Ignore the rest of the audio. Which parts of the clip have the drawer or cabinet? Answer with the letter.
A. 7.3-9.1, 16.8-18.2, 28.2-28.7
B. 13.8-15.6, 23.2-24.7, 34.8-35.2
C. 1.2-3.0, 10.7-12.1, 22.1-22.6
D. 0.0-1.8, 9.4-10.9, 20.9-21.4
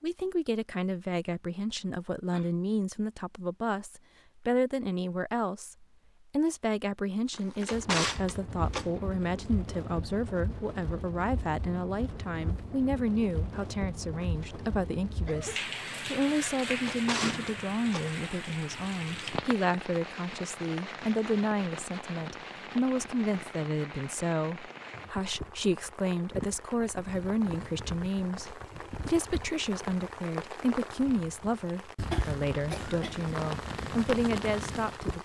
A.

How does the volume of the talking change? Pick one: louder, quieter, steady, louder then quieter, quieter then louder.
steady.